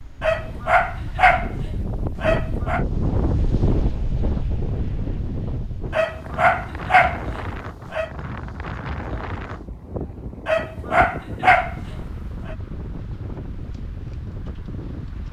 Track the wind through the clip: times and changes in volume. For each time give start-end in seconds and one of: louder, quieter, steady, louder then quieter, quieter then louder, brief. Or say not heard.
0.0-15.2 quieter.